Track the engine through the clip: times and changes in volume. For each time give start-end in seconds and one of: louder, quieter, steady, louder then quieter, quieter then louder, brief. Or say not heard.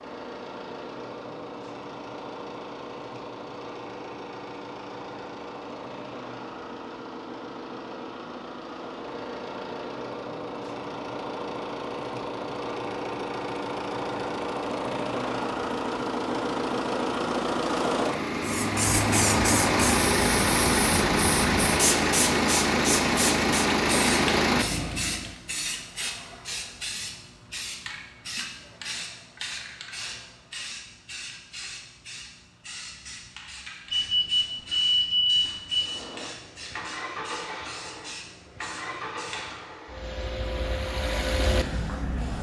0.0-25.4 louder
35.7-42.3 louder.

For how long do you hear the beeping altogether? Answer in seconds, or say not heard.
2 s.